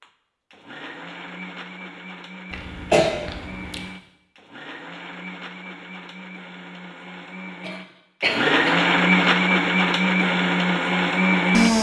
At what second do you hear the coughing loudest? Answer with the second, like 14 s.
3 s.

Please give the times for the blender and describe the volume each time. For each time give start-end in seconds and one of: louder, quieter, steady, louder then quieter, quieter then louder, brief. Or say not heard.
0.0-11.7 louder.